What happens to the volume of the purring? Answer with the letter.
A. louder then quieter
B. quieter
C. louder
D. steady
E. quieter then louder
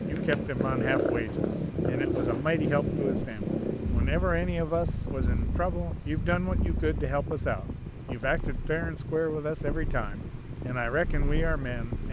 B.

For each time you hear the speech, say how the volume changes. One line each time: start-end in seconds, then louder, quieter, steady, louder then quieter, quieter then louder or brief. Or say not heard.
0.0-12.0 steady.